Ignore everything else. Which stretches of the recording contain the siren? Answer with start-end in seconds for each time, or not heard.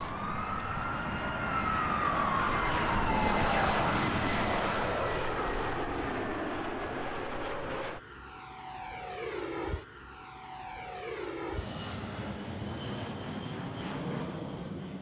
0.0-3.8.